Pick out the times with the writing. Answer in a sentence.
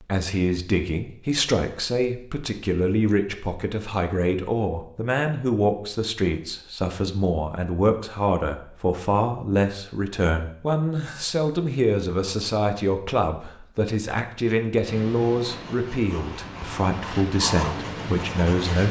The writing can be heard from 14.8 to 18.8 s.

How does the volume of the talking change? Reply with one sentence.
The volume of the talking stays about the same.